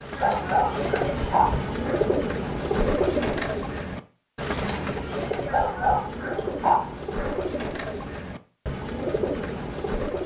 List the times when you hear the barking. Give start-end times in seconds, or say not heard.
0.1-2.1, 5.5-7.4.